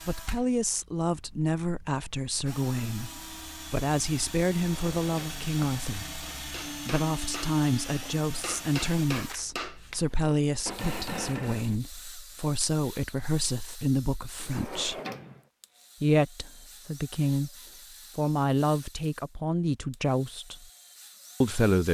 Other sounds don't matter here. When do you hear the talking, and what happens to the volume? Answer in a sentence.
You can hear the talking from 0.1 to 15.0 s, at a steady volume; briefly from 16.0 to 17.5 s; briefly from 18.1 to 20.6 s; and briefly from 21.4 to 21.8 s.